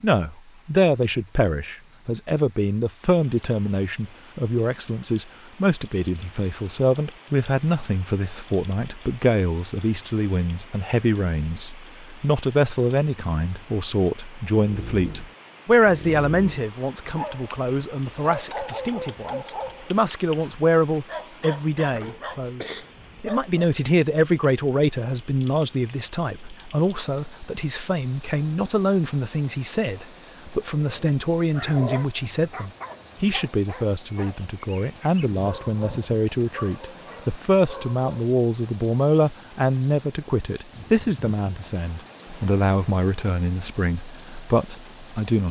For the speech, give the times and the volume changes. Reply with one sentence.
The speech can be heard from 0.0 to 45.4 s, at a steady volume.